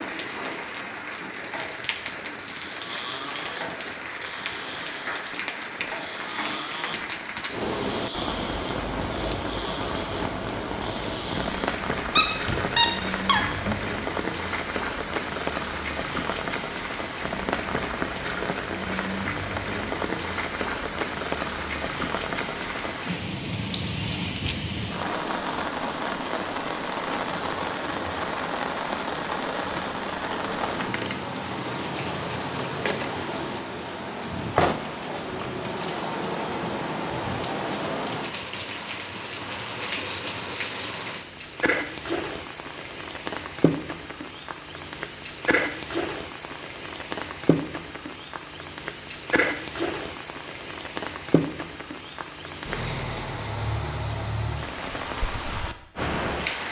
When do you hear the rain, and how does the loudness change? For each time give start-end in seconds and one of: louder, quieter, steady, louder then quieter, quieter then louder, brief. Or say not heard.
0.0-56.6 steady.